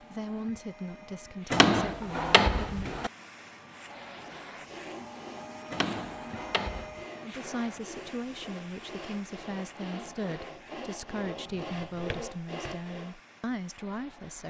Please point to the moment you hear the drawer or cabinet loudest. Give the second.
2 s.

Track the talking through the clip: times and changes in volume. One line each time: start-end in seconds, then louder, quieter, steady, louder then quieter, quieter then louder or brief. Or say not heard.
0.0-3.0 brief
7.2-14.4 steady.